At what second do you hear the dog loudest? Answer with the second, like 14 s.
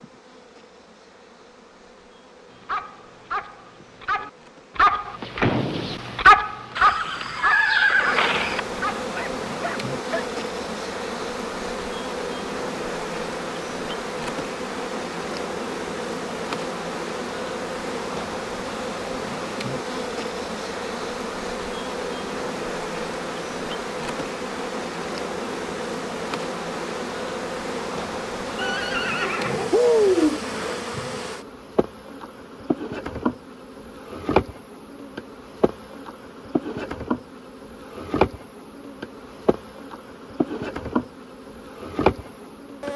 6 s.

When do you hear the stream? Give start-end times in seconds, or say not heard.
not heard.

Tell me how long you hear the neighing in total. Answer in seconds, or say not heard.
4 s.